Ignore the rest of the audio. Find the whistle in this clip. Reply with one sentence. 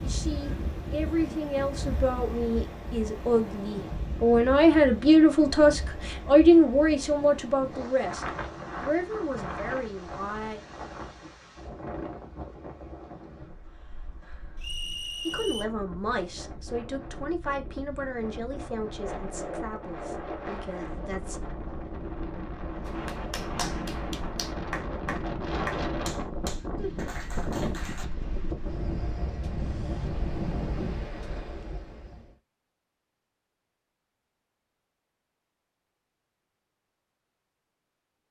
The whistle can be heard from 14.6 to 15.7 s.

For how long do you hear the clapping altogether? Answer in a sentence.
You can hear the clapping for 5 seconds altogether.